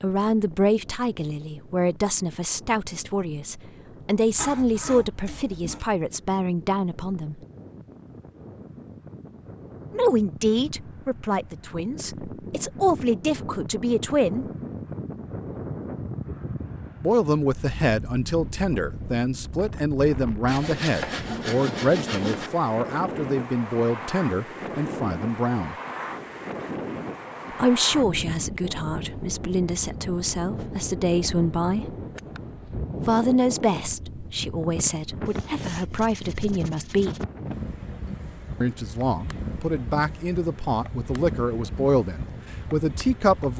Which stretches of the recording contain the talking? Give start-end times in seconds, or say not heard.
0.0-7.4, 9.9-14.4, 17.0-25.8, 27.6-31.9, 33.0-37.2, 38.6-43.5.